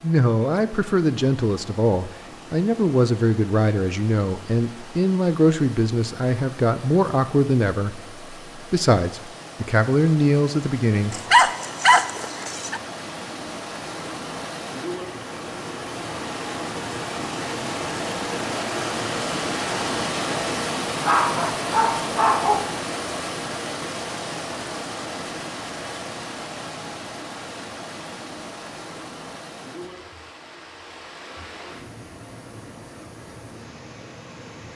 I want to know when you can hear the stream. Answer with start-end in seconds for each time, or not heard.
0.0-34.7.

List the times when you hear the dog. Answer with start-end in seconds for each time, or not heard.
11.1-12.8, 21.0-22.8.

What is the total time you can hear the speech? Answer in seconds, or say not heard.
11 s.